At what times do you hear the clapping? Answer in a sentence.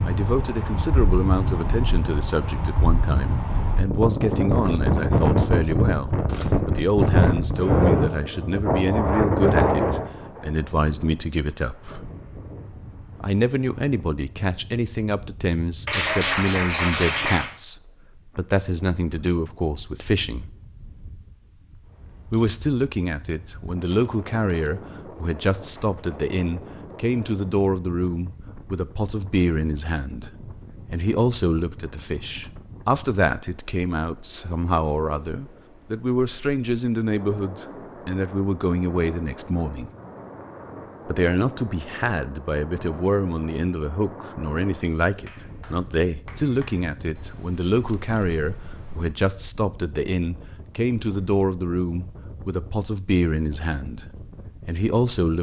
You can hear the clapping from 15.8 to 17.5 s and from 45.1 to 46.9 s.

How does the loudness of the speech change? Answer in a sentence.
The volume of the speech stays about the same.